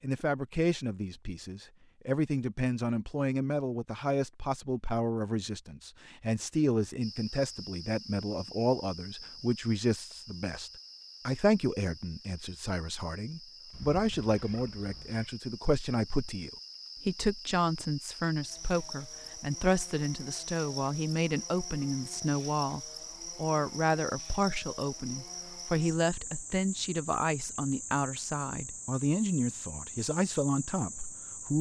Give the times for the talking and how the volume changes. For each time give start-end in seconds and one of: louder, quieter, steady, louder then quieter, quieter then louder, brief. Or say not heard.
0.0-31.5 steady.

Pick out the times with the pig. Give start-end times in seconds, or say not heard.
not heard.